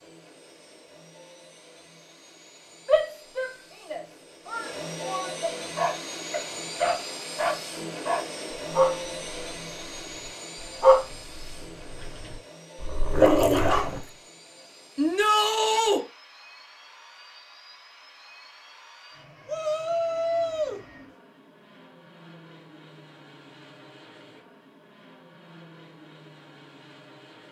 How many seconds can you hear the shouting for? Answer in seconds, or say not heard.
5 s.